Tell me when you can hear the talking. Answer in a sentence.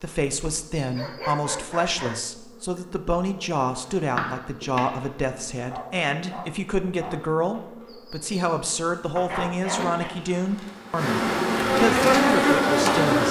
The talking can be heard from 0.0 to 13.2 s.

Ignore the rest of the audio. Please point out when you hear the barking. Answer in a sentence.
The barking can be heard from 0.9 to 2.3 s, from 5.7 to 7.2 s and from 9.2 to 10.2 s.